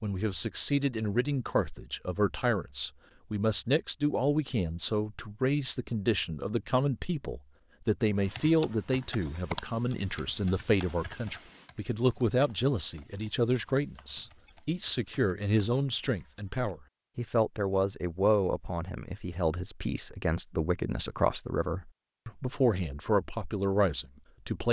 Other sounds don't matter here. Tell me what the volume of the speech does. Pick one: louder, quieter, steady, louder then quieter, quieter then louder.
steady.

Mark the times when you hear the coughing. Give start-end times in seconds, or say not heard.
not heard.